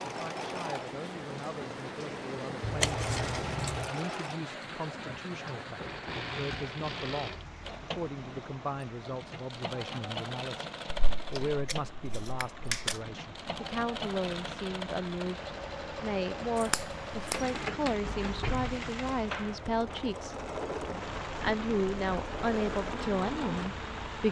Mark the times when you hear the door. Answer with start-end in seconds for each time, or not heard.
18.1-20.1.